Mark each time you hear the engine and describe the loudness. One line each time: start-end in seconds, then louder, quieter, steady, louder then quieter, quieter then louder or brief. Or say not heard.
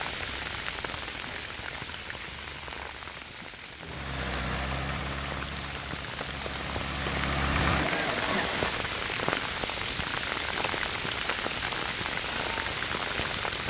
3.8-8.9 quieter then louder.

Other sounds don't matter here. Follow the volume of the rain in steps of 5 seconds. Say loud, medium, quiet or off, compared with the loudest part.
medium, loud, loud.